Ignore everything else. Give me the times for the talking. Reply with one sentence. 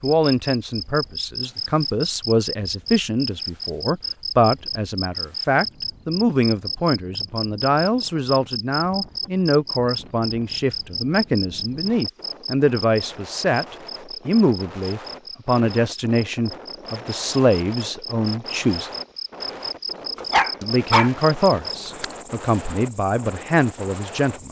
The talking can be heard from 0.0 to 18.9 s and from 20.6 to 24.4 s.